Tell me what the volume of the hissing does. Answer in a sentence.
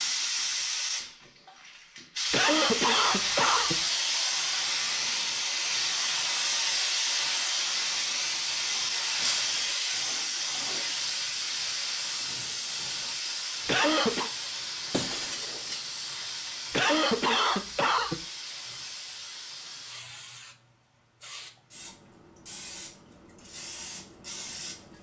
The volume of the hissing goes down.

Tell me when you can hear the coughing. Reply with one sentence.
The coughing can be heard from 2.3 to 3.8 s, from 13.7 to 14.3 s and from 16.7 to 18.2 s.